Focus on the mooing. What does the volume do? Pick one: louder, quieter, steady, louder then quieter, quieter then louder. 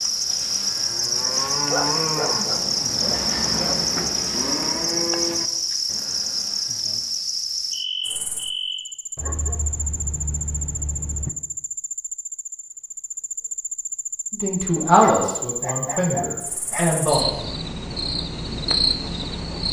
louder then quieter.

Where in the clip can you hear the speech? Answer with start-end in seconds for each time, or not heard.
14.3-17.2.